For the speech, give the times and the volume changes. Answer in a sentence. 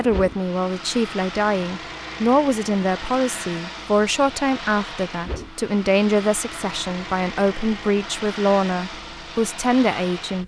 You can hear the speech from 0.0 to 10.4 s, at a steady volume.